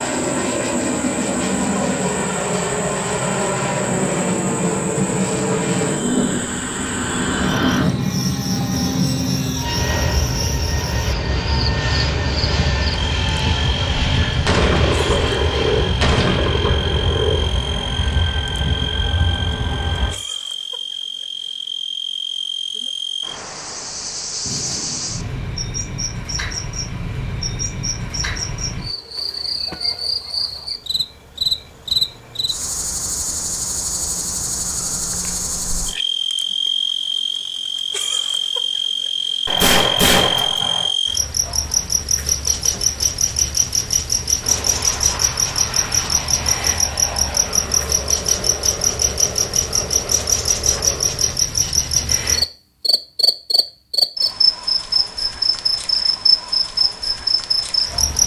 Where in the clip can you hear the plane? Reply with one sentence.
You can hear the plane from 0.0 to 20.1 s and from 44.4 to 51.4 s.